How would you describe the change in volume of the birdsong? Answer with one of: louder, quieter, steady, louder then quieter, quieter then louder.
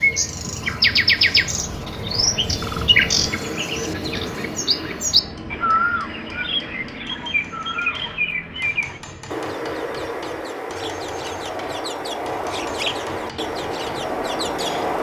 quieter.